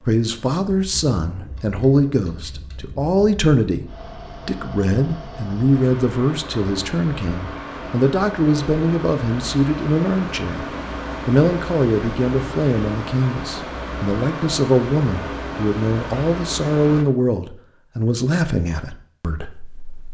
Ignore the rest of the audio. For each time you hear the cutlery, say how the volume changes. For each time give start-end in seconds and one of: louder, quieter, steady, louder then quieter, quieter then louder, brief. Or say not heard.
not heard.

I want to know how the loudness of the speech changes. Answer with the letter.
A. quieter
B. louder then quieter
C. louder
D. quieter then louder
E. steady
E.